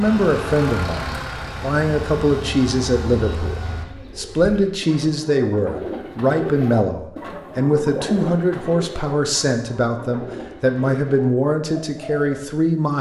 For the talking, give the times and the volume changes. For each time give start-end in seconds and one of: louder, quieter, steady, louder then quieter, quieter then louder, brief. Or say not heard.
0.0-12.9 steady.